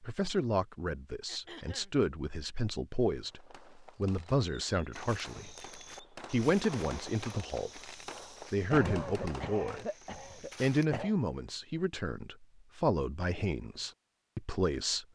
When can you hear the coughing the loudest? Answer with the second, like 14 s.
9 s.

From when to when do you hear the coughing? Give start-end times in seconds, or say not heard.
1.2-1.9, 8.7-11.2.